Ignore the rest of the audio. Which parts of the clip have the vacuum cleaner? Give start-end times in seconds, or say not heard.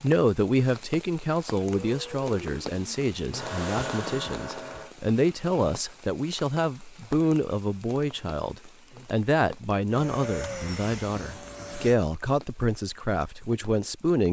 1.6-5.0, 9.8-11.9.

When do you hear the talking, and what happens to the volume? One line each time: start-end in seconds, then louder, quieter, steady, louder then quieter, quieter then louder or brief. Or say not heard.
0.0-14.2 steady.